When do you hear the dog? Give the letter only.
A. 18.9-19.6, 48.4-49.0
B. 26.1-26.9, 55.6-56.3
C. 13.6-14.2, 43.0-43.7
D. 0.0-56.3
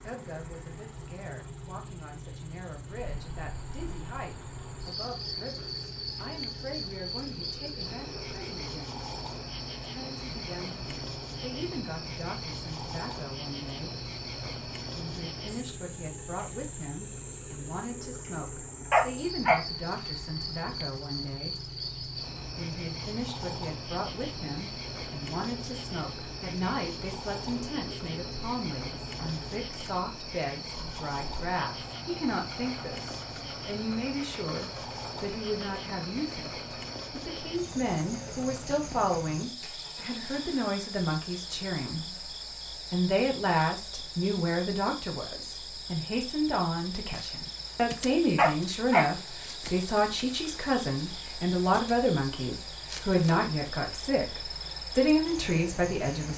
A.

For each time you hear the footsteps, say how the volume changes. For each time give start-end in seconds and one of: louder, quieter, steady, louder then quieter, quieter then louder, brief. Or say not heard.
not heard.